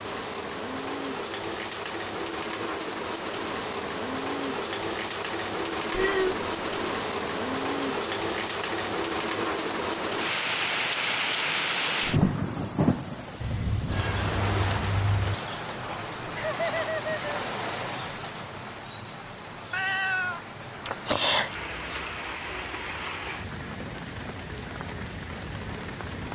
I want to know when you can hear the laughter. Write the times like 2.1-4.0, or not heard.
16.4-17.4.